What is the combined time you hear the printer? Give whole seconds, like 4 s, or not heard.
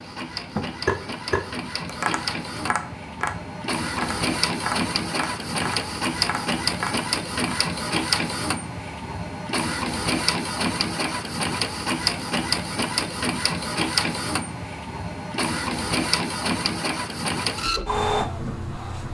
19 s.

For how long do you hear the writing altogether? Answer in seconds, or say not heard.
not heard.